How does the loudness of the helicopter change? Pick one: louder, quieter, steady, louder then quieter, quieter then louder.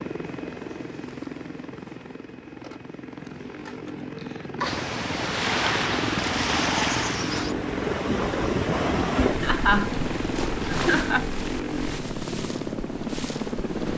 louder.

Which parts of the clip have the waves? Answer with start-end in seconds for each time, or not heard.
4.6-13.9.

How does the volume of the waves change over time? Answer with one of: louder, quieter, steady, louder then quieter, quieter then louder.
quieter.